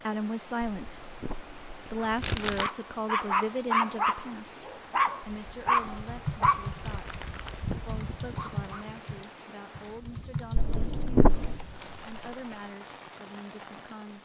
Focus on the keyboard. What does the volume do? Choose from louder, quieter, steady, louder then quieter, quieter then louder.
quieter.